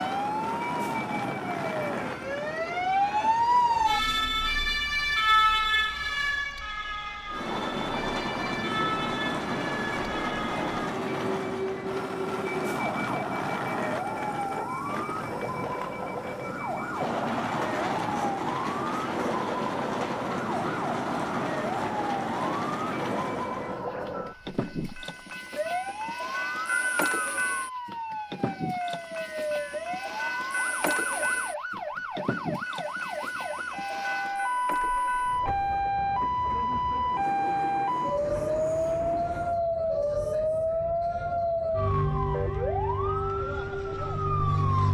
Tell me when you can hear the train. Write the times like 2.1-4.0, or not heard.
0.0-4.8, 7.3-39.6.